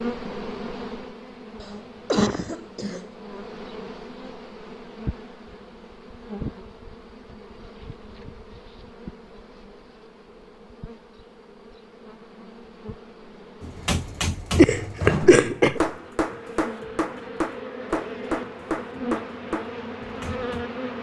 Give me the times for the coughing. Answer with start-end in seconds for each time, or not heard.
1.6-3.1, 14.6-15.8.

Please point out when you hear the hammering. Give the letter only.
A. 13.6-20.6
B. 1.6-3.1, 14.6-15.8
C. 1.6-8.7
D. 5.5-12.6
A.